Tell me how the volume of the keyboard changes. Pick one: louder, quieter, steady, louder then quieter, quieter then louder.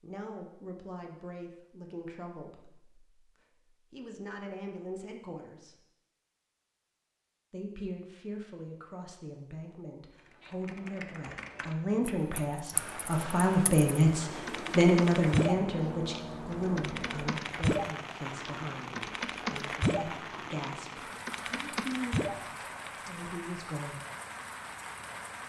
louder.